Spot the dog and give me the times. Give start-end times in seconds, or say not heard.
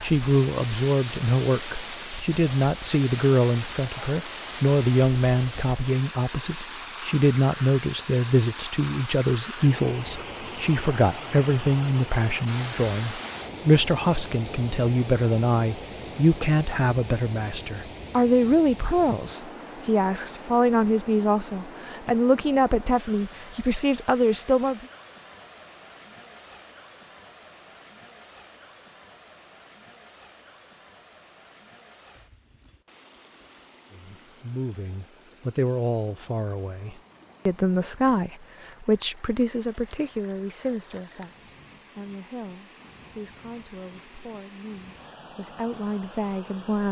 not heard.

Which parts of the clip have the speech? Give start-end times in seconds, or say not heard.
0.0-24.9, 33.9-46.8.